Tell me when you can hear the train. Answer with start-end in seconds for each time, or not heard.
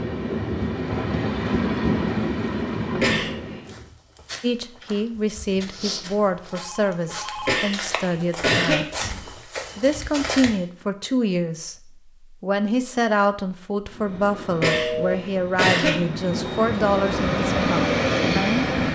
0.0-3.9, 13.8-18.8.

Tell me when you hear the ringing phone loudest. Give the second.
15 s.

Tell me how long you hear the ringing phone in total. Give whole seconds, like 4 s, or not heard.
2 s.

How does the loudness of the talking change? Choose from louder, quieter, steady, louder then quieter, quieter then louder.
steady.